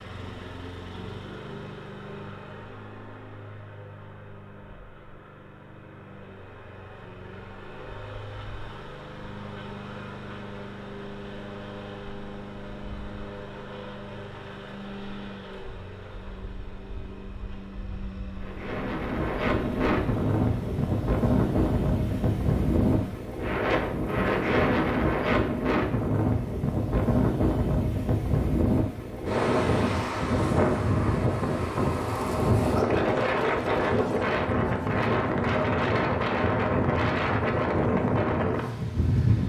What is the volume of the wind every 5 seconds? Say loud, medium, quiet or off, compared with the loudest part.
off, off, off, loud, loud, loud, loud, loud.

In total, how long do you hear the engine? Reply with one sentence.
You can hear the engine for 23 seconds altogether.